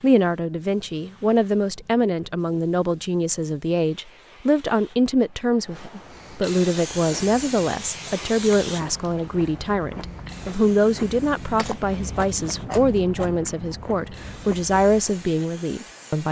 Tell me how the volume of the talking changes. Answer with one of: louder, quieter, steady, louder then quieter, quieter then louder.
steady.